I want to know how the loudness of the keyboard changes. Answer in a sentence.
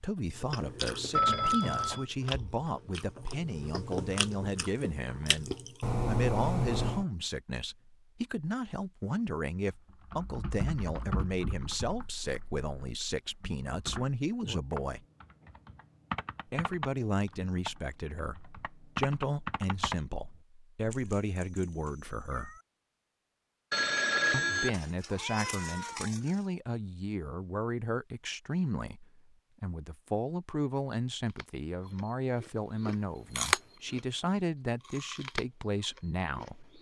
The loudness of the keyboard goes down, then up.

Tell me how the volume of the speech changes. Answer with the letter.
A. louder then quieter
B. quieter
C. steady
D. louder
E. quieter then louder
C.